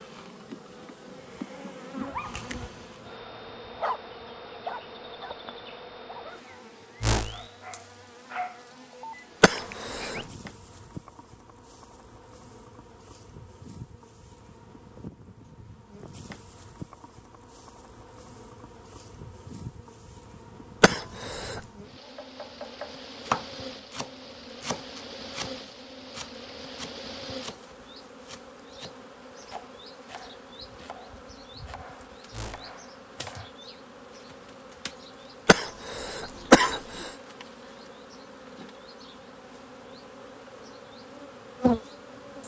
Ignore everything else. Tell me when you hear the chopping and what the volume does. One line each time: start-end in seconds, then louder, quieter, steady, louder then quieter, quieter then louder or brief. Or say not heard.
22.0-33.5 quieter.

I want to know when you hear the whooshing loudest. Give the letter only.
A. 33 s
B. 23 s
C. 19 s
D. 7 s
D.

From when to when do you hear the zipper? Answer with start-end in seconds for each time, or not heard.
not heard.